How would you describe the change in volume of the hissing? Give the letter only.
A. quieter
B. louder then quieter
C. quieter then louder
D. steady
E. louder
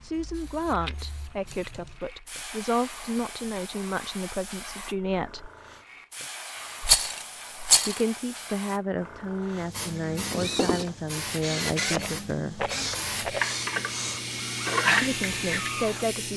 E.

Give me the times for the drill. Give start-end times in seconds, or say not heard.
10.2-16.3.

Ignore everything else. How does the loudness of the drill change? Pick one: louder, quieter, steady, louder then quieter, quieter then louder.
quieter.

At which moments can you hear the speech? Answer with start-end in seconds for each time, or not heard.
0.0-5.5, 7.8-12.6, 15.0-16.3.